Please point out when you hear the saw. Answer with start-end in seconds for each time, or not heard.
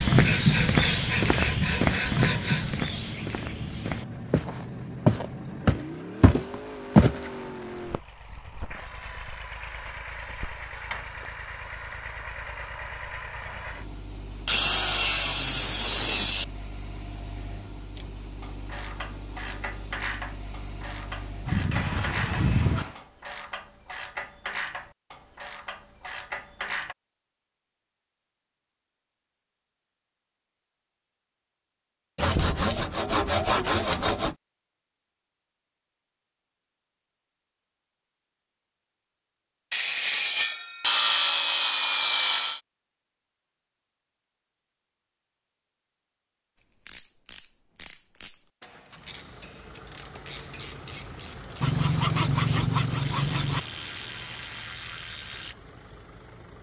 0.2-2.6, 14.4-16.4, 21.4-22.9, 32.1-34.4, 39.7-42.6, 51.6-53.6.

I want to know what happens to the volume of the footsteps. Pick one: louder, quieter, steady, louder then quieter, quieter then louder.
quieter then louder.